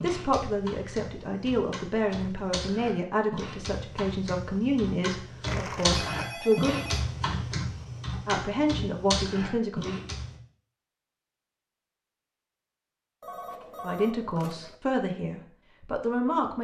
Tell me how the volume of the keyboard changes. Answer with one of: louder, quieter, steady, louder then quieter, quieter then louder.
louder.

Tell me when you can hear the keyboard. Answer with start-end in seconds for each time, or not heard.
0.0-10.4.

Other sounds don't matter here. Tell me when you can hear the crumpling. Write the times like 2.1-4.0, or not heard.
5.5-6.3.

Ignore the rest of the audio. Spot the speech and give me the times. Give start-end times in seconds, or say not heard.
0.0-6.8, 8.2-10.0, 13.8-16.5.